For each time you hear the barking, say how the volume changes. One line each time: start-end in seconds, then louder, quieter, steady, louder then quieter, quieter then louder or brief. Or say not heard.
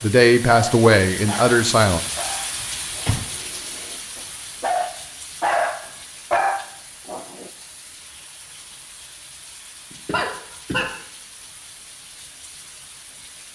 0.0-7.5 quieter then louder.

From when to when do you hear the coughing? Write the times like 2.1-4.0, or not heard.
2.6-3.2, 9.9-10.8.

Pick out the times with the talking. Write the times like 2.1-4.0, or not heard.
0.0-2.0.